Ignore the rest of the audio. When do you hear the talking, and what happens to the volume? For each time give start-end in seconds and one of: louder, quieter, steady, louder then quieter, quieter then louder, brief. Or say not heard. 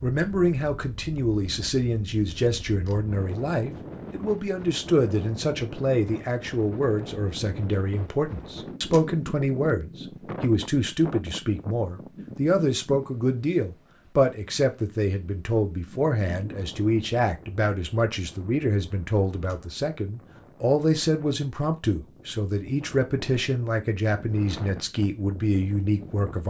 0.0-26.4 steady.